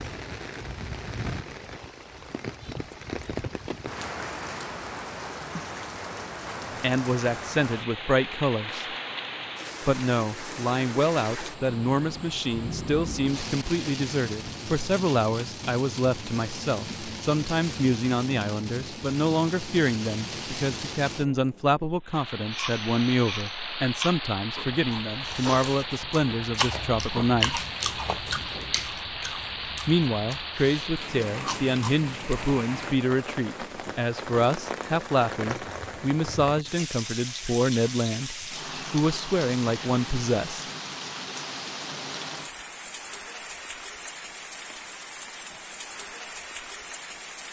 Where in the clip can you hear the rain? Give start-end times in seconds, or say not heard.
0.0-47.4.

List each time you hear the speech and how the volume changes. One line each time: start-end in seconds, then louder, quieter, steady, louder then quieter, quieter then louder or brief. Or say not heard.
6.8-8.9 brief
9.8-27.6 steady
29.9-40.6 steady.